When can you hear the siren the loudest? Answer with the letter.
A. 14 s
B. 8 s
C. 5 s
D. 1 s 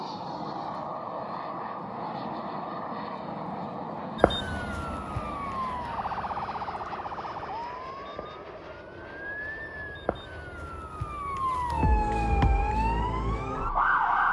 A.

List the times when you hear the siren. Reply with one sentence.
You can hear the siren from 4.2 to 14.2 s.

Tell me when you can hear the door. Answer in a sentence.
The door can't be heard in this clip.